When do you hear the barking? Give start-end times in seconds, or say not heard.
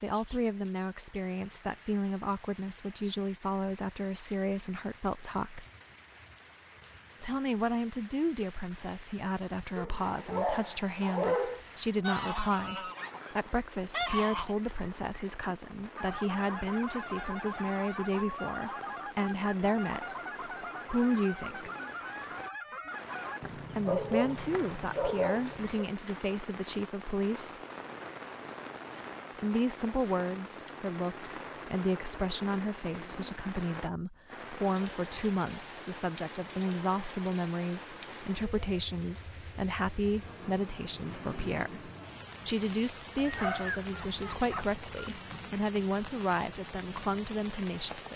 9.8-11.6, 23.4-25.9, 43.1-45.2.